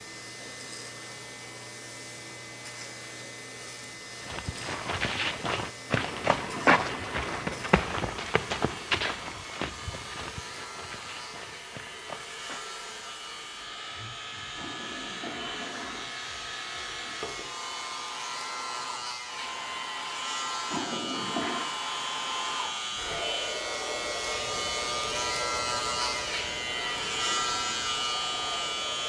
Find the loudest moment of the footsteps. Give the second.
7 s.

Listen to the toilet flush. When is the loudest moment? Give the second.
21 s.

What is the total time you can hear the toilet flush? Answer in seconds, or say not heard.
4 s.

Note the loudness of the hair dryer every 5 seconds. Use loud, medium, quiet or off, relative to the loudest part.
medium, medium, medium, loud, loud, loud.